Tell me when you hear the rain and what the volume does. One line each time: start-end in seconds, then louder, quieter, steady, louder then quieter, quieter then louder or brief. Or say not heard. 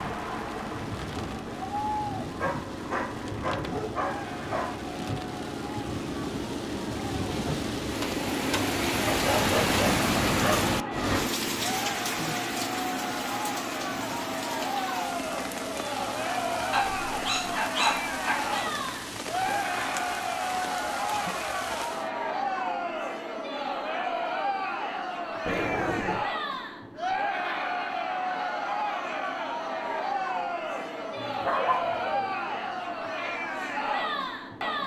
0.0-22.1 louder then quieter.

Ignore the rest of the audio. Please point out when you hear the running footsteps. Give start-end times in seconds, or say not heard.
not heard.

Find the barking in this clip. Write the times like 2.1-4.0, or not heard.
2.4-4.8, 9.1-10.7, 16.7-18.6, 25.4-26.2, 31.1-32.3.